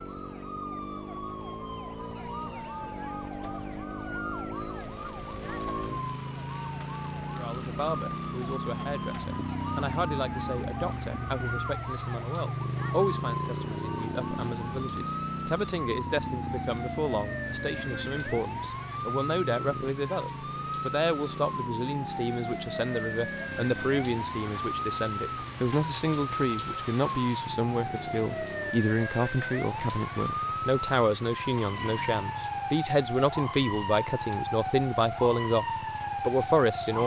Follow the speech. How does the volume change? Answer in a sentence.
The loudness of the speech goes up.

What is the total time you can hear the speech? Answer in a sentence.
The speech can be heard for 30 seconds in total.